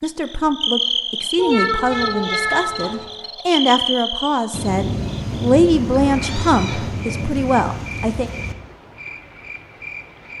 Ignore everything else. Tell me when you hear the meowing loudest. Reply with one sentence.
The volume of the meowing peaks at 2 seconds.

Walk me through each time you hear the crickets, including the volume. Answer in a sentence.
You can hear the crickets from 0.0 to 10.3 s, getting quieter.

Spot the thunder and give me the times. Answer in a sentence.
The thunder can be heard from 4.5 to 8.6 s.